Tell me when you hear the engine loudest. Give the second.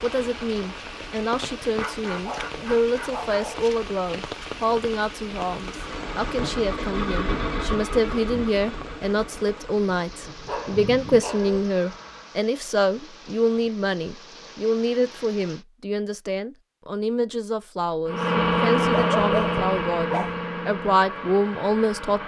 19 s.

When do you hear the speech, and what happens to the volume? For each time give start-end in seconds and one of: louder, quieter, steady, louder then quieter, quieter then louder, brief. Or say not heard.
0.0-22.2 steady.